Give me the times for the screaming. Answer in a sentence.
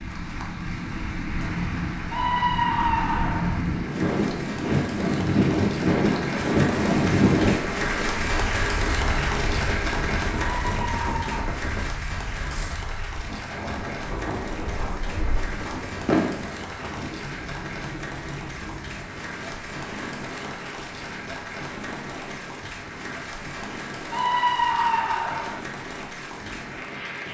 You can hear the screaming from 2.1 to 3.6 s, from 10.3 to 11.6 s and from 24.1 to 25.6 s.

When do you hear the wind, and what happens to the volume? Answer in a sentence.
You can hear the wind from 0.0 to 27.2 s, getting quieter.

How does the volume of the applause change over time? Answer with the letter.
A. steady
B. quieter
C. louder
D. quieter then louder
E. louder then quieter
E.